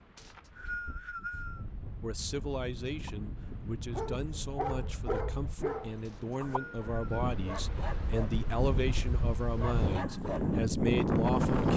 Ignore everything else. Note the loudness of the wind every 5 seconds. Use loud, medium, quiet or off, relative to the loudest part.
quiet, medium, loud.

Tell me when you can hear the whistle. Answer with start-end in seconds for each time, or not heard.
0.1-1.6, 6.0-7.2.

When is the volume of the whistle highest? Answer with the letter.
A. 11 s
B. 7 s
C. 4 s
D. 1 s
D.